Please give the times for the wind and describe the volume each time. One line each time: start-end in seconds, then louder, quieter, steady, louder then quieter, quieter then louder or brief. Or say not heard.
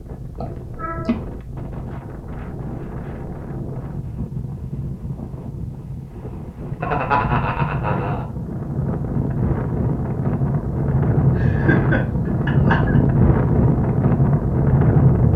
0.0-15.3 louder.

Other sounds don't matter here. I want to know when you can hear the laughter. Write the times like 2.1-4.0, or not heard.
0.4-1.1, 6.8-8.2, 11.3-13.0.